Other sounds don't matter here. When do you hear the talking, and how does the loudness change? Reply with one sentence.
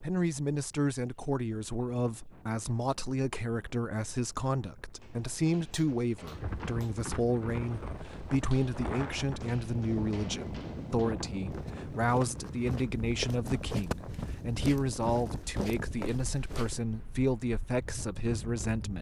The talking can be heard from 0.0 to 18.9 s, at a steady volume.